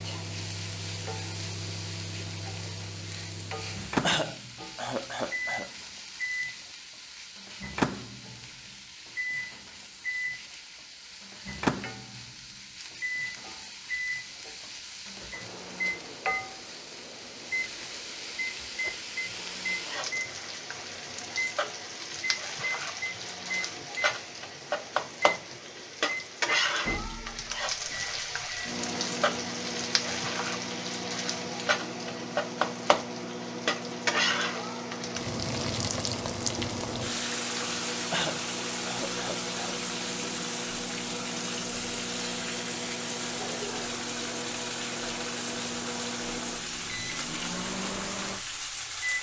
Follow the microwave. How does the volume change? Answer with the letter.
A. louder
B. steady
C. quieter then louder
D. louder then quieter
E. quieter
B.